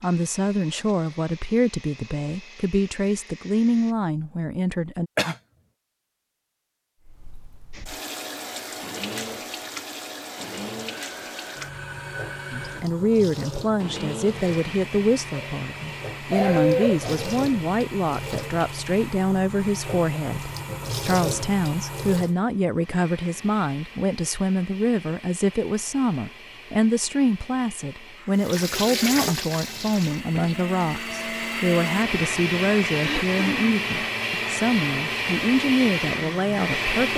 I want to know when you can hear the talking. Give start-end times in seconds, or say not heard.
0.0-5.1, 12.5-37.1.